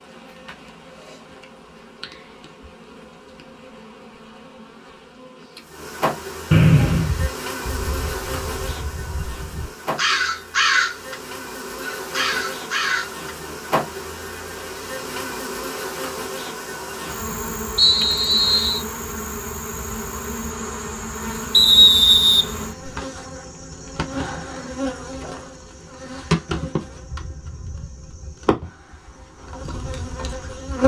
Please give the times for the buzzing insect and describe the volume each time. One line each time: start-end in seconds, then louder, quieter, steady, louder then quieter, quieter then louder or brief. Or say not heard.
0.0-30.8 louder.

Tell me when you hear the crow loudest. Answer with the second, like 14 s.
11 s.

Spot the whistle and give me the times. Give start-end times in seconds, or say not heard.
6.5-7.2, 17.8-18.8, 21.5-22.9.